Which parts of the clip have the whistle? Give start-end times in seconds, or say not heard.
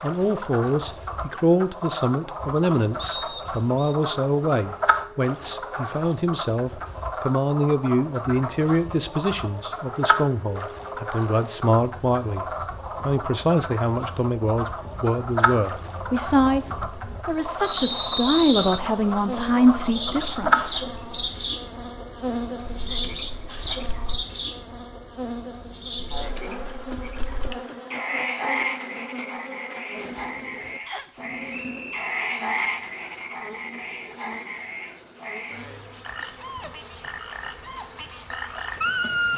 3.0-4.0, 17.6-18.8, 30.9-32.1.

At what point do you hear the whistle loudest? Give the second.
18 s.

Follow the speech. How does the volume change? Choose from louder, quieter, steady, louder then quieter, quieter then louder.
steady.